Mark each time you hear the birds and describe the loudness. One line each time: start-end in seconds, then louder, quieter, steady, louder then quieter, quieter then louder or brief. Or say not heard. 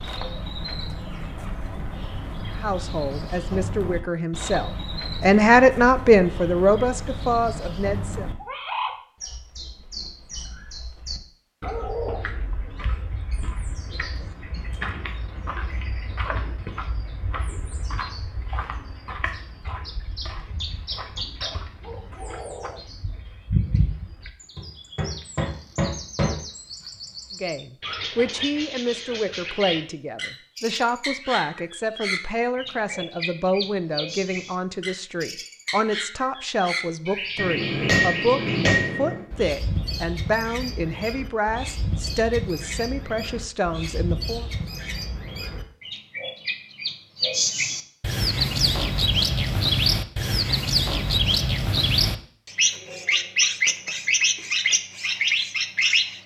0.0-56.2 louder.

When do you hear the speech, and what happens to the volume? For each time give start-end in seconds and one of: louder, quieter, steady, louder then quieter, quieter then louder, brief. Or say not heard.
2.5-8.3 louder then quieter
27.4-44.5 steady.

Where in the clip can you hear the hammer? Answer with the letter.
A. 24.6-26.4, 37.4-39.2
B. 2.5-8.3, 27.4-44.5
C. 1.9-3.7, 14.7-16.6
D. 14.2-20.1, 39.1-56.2
A.